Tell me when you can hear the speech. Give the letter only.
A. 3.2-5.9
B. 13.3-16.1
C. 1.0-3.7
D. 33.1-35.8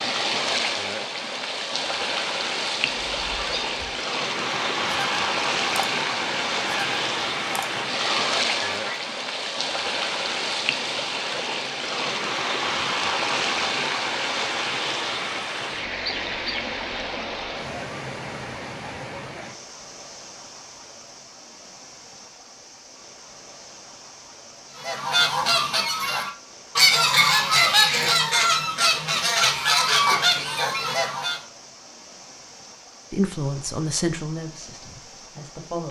D.